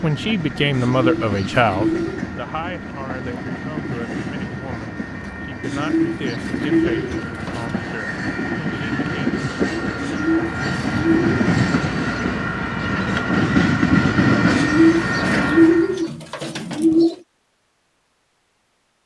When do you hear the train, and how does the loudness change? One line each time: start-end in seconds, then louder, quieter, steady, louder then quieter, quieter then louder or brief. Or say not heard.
0.0-16.1 louder.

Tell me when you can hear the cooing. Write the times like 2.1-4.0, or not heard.
0.7-2.2, 5.6-7.7, 9.9-11.3, 14.5-17.1.